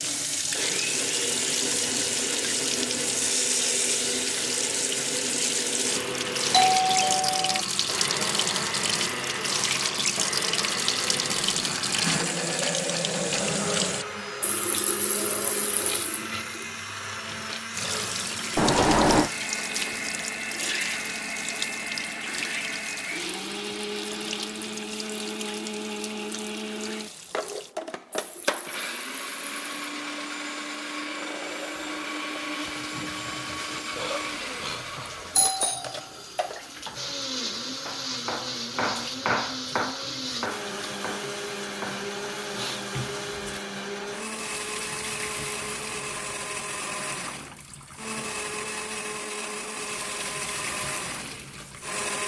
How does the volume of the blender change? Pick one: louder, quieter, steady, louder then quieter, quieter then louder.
steady.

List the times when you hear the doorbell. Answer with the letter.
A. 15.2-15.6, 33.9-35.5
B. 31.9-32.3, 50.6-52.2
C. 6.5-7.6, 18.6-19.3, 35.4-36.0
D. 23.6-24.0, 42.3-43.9
C.